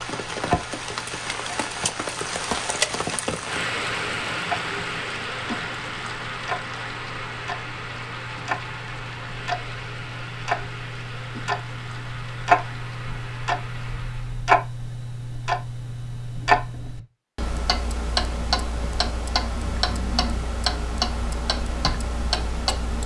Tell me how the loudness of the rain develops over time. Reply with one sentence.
The loudness of the rain goes down.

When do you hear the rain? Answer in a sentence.
You can hear the rain from 0.0 to 14.4 s.